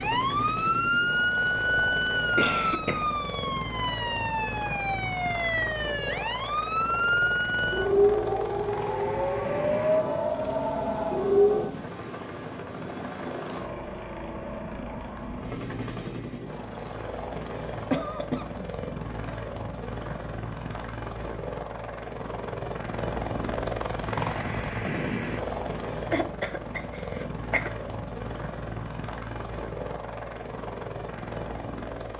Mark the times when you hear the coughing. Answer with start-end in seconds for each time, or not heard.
1.6-3.0, 17.9-18.7, 26.0-27.7.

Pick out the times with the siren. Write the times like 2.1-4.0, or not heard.
0.0-11.7.